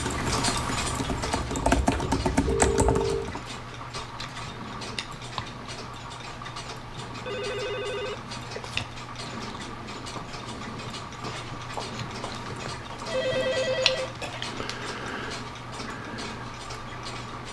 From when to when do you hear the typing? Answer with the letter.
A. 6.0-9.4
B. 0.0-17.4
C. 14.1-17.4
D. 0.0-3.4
D.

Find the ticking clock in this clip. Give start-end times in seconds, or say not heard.
0.0-17.4.